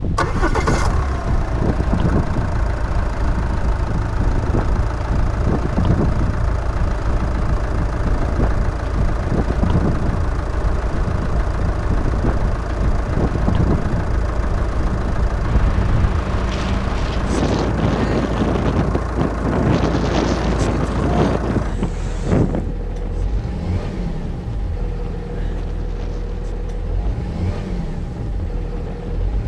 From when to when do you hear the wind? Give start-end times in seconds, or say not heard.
0.0-29.4.